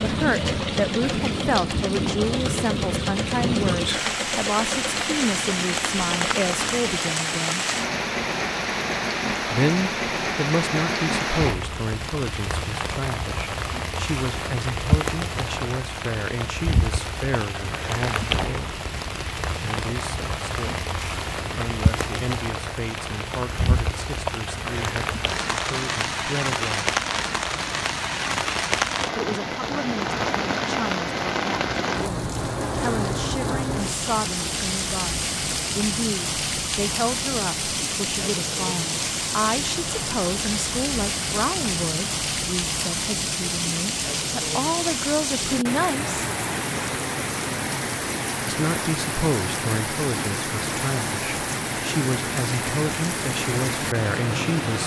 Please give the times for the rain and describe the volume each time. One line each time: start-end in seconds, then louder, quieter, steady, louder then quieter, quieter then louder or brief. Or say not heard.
0.0-54.8 steady.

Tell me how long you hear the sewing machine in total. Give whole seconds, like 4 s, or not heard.
7 s.